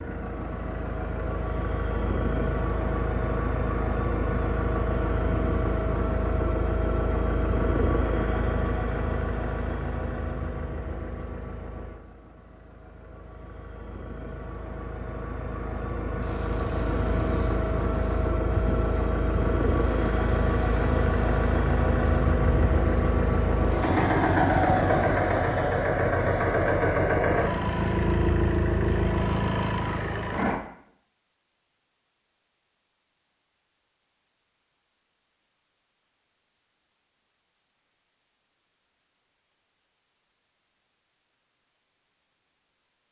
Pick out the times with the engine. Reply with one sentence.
The engine can be heard from 0.0 to 30.6 s.